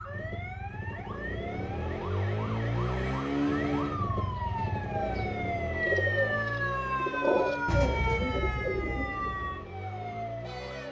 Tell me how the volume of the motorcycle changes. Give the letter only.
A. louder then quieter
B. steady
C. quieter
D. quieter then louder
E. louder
A.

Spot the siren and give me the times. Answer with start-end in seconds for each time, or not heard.
0.0-10.8.